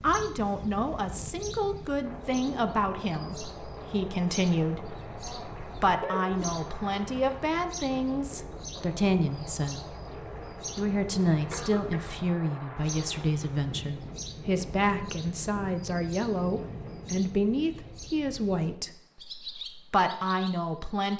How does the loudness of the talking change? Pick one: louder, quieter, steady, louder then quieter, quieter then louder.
steady.